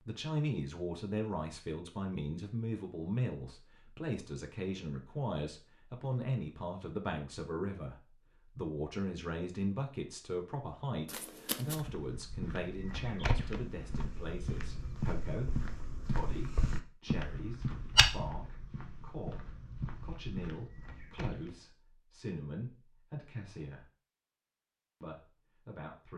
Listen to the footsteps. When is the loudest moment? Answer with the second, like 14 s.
18 s.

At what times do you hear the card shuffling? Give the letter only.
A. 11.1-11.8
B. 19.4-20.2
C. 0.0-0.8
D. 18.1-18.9
A.